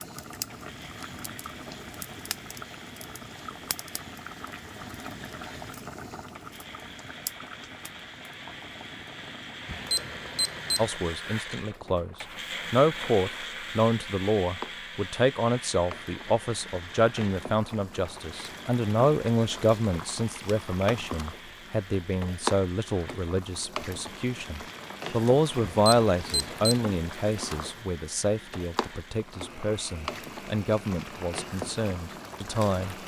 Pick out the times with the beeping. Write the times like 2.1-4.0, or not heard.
9.7-10.9, 25.6-26.9.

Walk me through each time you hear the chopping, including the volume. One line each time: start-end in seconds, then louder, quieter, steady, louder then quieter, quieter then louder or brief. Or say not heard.
not heard.